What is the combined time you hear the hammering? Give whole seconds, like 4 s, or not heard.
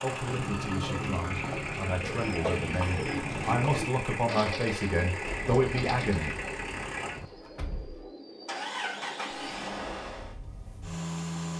not heard.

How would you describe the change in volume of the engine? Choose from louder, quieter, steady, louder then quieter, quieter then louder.
steady.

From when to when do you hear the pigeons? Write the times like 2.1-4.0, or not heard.
0.1-9.6.